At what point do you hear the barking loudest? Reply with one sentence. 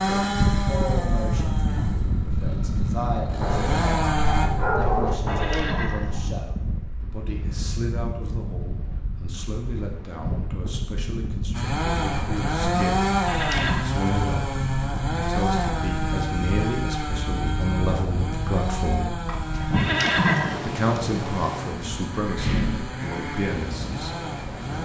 The volume of the barking peaks at 5 seconds.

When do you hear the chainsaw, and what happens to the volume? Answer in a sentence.
You can hear the chainsaw from 0.0 to 4.5 s, getting quieter then louder; and from 11.5 to 24.8 s, getting quieter.